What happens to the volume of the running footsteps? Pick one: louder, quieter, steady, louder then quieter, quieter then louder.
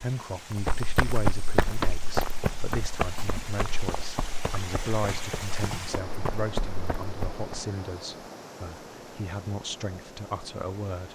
quieter then louder.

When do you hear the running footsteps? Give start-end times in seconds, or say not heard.
0.5-7.7.